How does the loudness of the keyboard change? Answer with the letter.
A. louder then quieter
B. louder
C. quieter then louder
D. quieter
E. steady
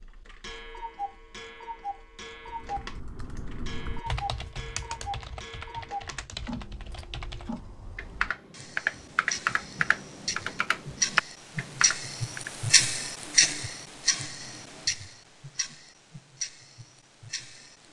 B.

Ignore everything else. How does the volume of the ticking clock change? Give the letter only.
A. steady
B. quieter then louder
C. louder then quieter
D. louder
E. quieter
C.